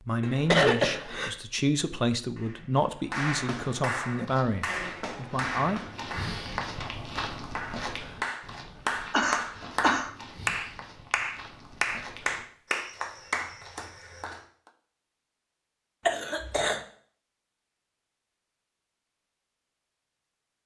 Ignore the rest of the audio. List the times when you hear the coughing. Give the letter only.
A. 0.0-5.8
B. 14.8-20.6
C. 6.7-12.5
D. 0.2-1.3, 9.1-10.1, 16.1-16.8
D.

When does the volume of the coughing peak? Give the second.
1 s.